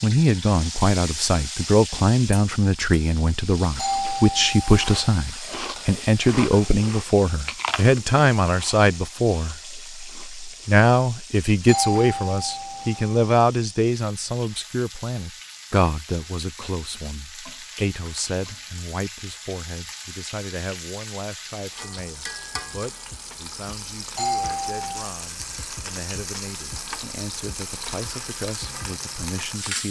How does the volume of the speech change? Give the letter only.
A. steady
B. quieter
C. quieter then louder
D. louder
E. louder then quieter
B.